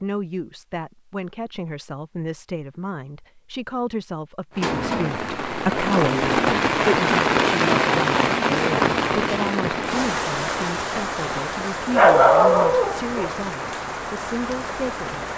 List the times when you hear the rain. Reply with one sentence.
The rain can be heard from 4.5 to 15.3 s.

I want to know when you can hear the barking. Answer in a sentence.
You can hear the barking from 11.9 to 13.3 s.